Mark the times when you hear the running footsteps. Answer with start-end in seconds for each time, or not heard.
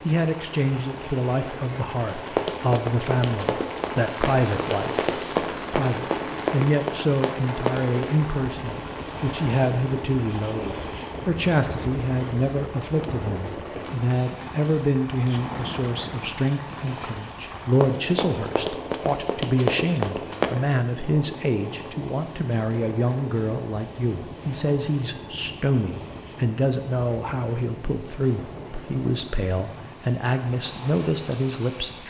2.1-8.1, 17.7-20.8.